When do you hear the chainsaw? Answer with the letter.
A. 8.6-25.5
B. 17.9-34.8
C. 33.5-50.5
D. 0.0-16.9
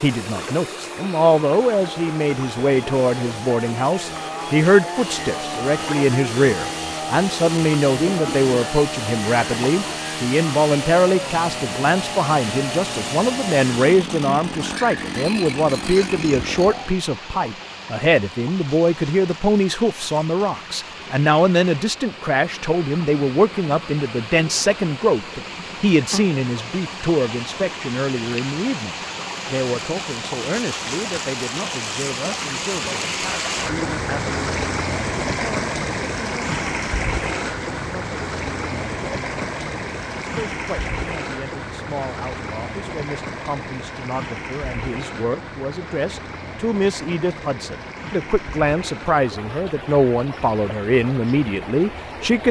D.